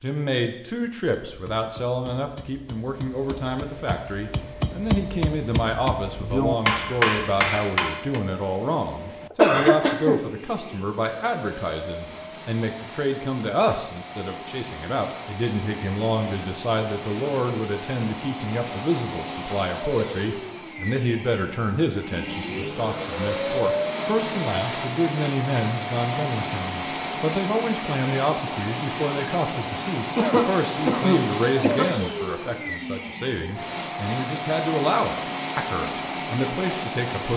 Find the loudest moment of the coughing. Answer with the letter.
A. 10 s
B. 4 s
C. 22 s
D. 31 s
A.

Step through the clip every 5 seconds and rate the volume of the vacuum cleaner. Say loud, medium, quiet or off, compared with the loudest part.
quiet, quiet, medium, medium, loud, loud, loud, loud.